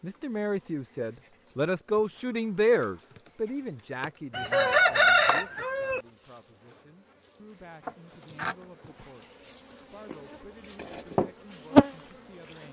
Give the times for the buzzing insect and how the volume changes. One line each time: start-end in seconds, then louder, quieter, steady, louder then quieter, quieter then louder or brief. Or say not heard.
0.1-12.6 louder.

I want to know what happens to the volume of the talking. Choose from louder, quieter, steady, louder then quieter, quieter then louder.
quieter.